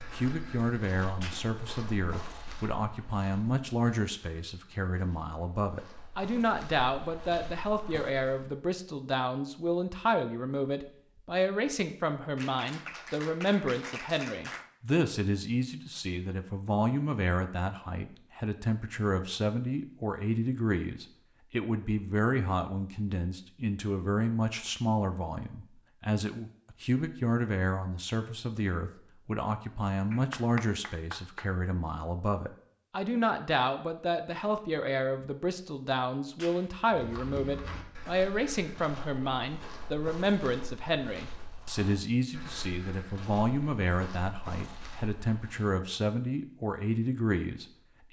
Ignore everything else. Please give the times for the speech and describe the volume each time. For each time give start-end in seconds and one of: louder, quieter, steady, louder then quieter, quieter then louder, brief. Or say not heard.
0.0-48.0 steady.